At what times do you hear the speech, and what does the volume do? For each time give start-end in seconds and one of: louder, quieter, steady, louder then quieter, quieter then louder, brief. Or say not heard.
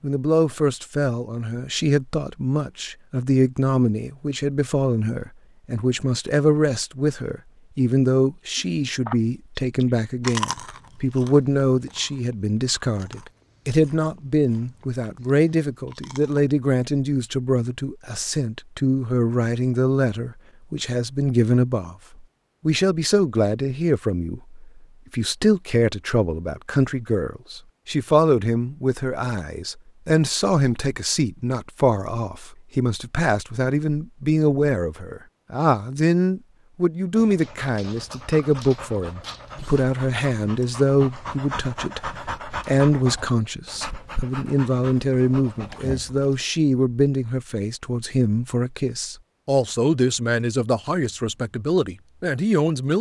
0.0-52.9 steady.